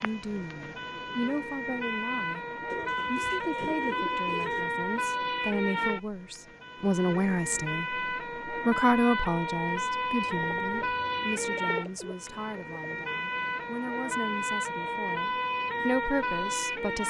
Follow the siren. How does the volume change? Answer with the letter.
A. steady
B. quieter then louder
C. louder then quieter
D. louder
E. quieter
A.